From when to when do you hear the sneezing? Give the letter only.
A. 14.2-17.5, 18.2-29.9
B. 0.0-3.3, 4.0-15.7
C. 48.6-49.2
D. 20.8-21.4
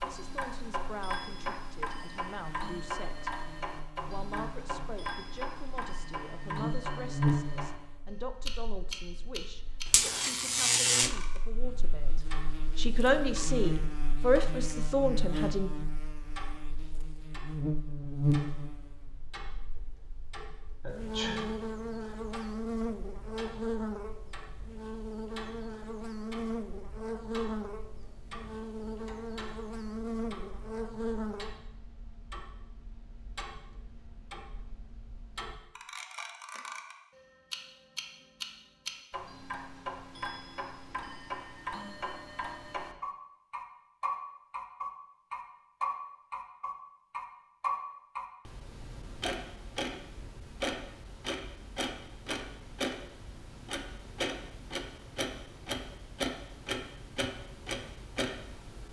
D.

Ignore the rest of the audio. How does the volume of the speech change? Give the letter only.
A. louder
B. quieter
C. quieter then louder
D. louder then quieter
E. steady
A.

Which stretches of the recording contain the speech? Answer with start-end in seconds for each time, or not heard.
0.0-3.3, 4.0-15.7.